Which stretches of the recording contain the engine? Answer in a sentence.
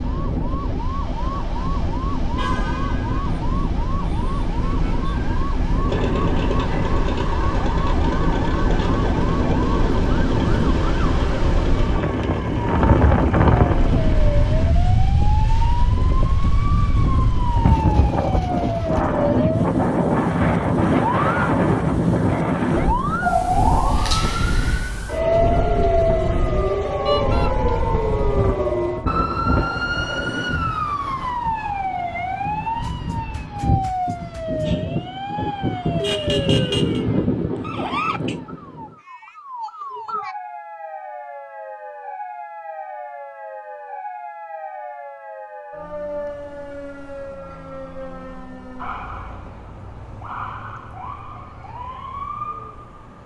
The engine can be heard from 5.8 to 14.7 s.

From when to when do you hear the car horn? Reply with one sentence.
The car horn can be heard from 2.4 to 3.4 s, from 27.1 to 27.5 s and from 36.0 to 37.0 s.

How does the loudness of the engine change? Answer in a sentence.
The loudness of the engine stays about the same.